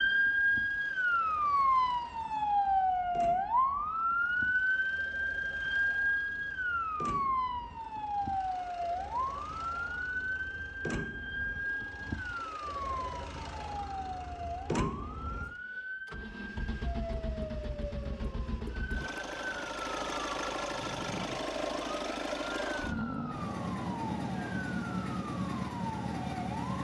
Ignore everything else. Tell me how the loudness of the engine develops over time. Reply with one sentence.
The loudness of the engine goes up.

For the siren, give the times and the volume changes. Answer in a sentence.
You can hear the siren from 0.0 to 26.7 s, getting quieter.